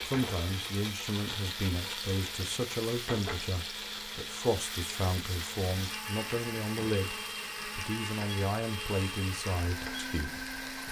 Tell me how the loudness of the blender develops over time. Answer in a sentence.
The volume of the blender stays about the same.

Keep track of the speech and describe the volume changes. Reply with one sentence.
The loudness of the speech stays about the same.